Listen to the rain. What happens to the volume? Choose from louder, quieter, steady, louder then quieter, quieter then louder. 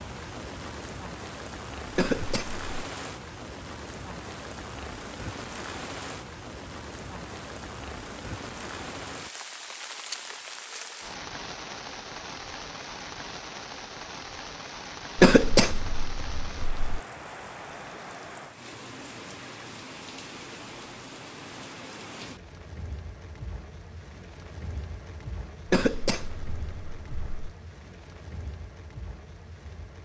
quieter.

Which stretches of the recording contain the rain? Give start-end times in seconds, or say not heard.
0.0-30.0.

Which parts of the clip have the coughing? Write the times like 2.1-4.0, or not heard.
1.9-2.6, 15.2-17.0, 25.6-27.5.